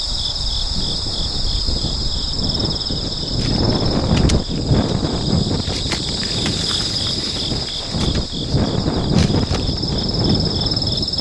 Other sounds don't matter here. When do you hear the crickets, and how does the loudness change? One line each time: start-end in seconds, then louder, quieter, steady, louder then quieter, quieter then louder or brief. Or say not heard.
0.0-11.1 steady.